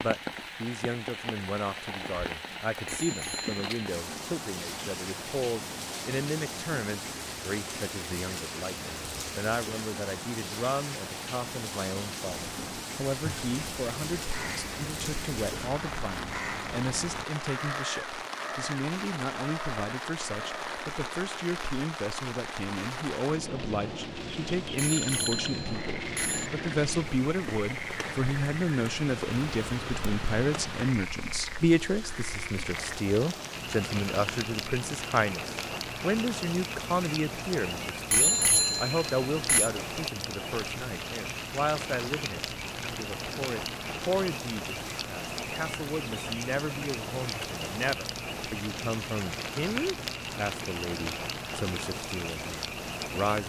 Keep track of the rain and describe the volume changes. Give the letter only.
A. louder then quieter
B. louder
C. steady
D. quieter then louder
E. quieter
C.